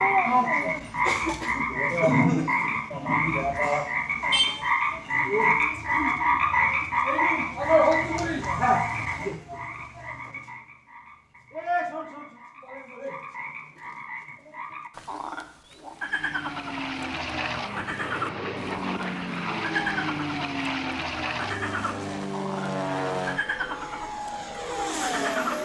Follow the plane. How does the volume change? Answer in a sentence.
The volume of the plane stays about the same.